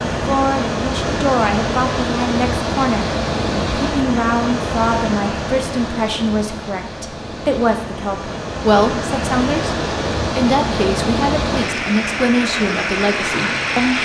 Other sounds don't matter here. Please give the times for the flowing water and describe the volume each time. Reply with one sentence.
The flowing water can be heard from 0.0 to 14.0 s, getting quieter then louder.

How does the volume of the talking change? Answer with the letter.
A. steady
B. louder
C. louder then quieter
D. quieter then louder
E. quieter
A.